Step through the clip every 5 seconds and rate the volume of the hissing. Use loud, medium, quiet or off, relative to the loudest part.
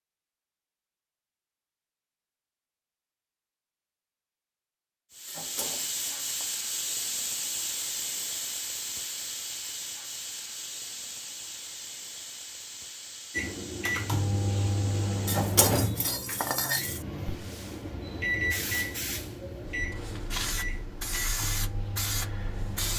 off, loud, medium, medium, loud.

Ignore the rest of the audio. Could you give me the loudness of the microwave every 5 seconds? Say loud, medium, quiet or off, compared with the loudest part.
off, off, loud, loud, medium.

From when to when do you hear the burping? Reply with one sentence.
The burping can't be heard in this clip.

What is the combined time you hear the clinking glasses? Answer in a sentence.
The clinking glasses can be heard for 3 seconds in total.